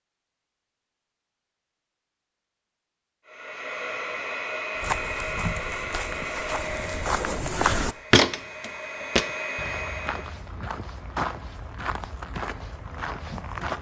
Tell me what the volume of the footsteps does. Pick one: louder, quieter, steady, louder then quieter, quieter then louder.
louder then quieter.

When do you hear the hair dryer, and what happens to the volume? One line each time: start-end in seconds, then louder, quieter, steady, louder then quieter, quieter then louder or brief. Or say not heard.
3.2-10.3 quieter then louder.